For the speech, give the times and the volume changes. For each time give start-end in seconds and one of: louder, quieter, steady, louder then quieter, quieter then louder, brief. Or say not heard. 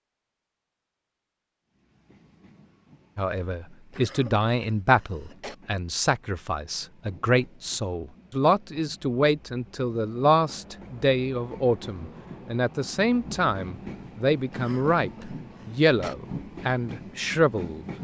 3.1-17.9 steady.